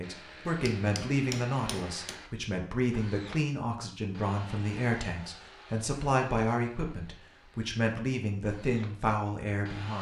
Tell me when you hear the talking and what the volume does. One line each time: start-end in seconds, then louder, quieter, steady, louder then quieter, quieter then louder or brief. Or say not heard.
0.0-9.9 steady.